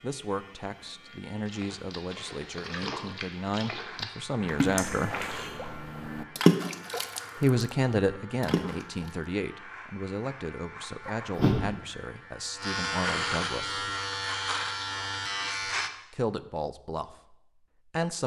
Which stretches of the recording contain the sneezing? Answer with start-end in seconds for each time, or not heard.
4.8-5.5, 11.1-11.6.